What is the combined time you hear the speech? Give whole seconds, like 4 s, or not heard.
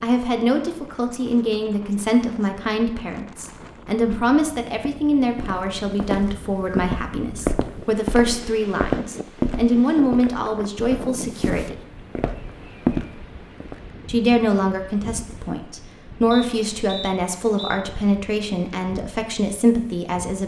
18 s.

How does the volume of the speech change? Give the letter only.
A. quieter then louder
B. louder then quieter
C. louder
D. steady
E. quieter
D.